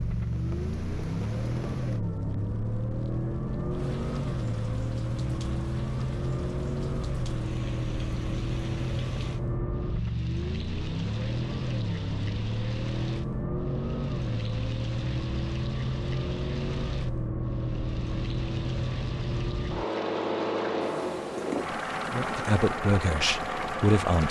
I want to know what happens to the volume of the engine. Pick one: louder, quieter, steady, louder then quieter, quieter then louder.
steady.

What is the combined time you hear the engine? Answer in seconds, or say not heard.
24 s.